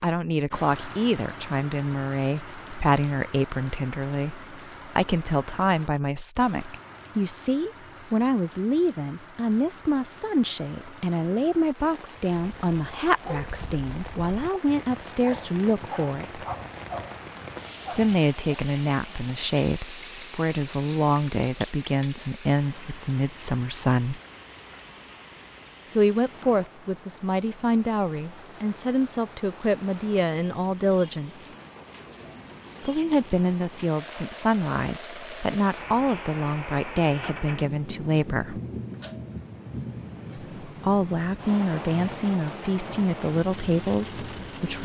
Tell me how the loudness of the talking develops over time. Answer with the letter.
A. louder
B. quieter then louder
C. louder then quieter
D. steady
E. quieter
D.